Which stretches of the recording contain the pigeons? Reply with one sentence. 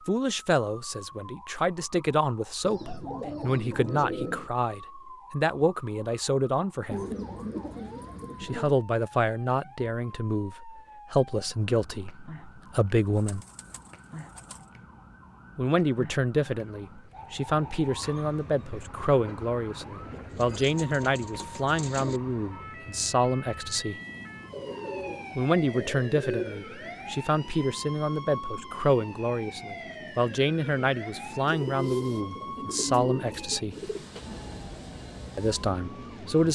The pigeons can be heard from 2.6 to 4.5 s, from 6.9 to 8.8 s, from 13.2 to 14.6 s, from 20.3 to 22.2 s, from 24.5 to 26.6 s and from 31.4 to 34.0 s.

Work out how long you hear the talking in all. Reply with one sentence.
You can hear the talking for 30 seconds altogether.